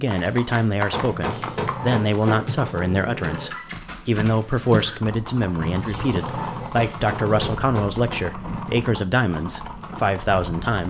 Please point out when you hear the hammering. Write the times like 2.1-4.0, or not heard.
0.9-2.5, 6.9-8.2.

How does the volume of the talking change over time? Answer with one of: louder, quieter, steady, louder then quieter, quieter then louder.
steady.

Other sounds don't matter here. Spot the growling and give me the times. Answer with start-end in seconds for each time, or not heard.
1.0-3.5, 5.5-7.6.